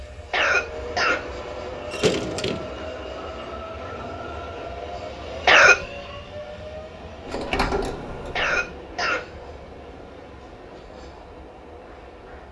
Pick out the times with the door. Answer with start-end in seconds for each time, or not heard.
1.9-2.8, 7.2-8.7.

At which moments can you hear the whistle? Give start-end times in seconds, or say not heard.
not heard.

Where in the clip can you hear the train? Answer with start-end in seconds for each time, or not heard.
0.0-12.4.